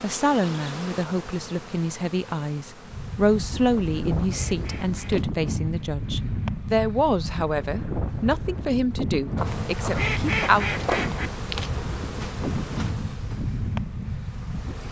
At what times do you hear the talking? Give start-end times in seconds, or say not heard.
0.0-10.7.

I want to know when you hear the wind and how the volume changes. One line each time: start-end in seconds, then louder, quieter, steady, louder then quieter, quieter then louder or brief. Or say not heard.
2.9-14.8 steady.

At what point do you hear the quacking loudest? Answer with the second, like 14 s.
11 s.